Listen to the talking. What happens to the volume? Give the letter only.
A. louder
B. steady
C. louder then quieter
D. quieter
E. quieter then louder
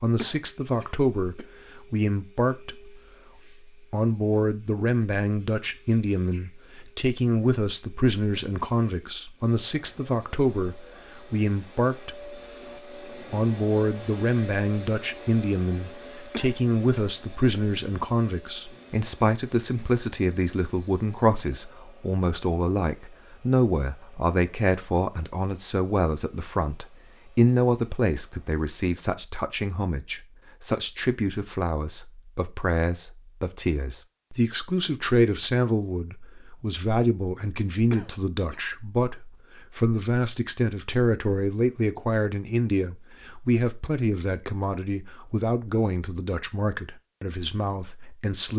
B.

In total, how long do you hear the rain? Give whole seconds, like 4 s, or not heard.
not heard.